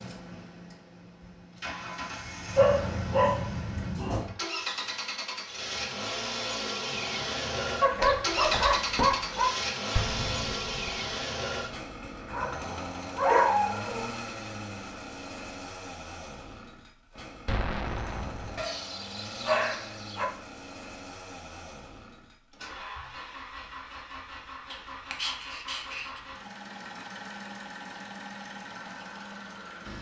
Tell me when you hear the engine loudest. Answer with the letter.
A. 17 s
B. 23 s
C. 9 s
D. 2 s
C.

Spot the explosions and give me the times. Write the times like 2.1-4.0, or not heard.
9.9-11.1, 17.4-18.6.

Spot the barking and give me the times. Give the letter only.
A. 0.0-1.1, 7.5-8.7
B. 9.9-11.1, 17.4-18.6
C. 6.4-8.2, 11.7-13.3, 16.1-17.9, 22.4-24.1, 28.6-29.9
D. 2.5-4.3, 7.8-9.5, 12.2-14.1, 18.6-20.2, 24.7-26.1
D.